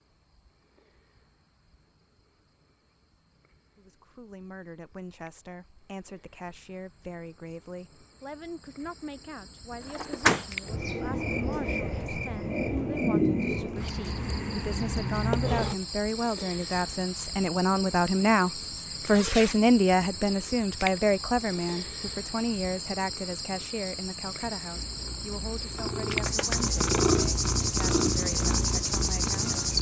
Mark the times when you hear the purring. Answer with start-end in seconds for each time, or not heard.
24.7-29.7.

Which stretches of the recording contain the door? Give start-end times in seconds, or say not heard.
9.9-10.9.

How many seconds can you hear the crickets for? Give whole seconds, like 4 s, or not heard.
30 s.